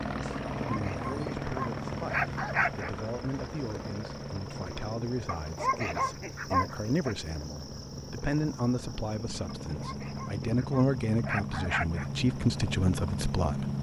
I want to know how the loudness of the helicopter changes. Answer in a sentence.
The loudness of the helicopter goes down, then up.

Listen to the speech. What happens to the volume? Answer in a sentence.
The loudness of the speech goes up.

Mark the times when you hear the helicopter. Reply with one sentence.
The helicopter can be heard from 0.0 to 13.7 s.